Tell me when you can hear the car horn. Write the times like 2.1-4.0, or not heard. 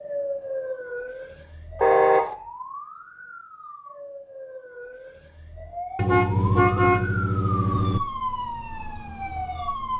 1.8-2.4, 6.0-8.0.